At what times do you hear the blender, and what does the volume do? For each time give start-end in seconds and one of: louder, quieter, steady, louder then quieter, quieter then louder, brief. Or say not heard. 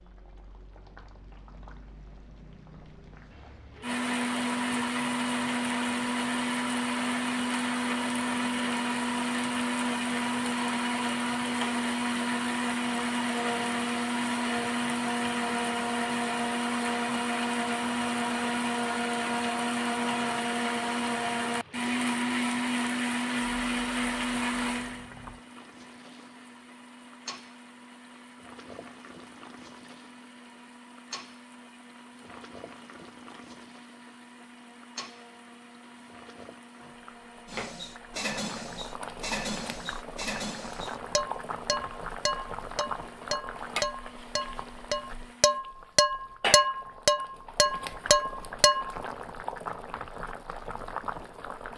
3.8-45.6 quieter.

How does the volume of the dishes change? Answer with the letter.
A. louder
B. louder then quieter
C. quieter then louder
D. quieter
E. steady
A.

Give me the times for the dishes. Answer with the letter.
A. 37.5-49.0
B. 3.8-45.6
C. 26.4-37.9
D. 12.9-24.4
A.